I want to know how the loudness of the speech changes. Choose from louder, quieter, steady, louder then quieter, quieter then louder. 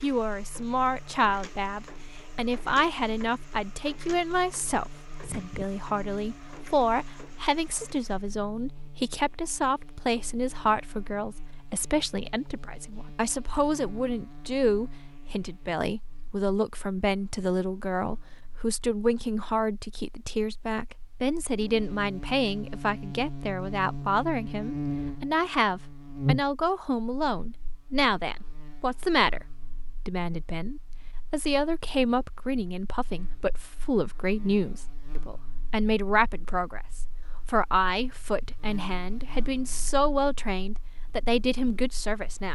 steady.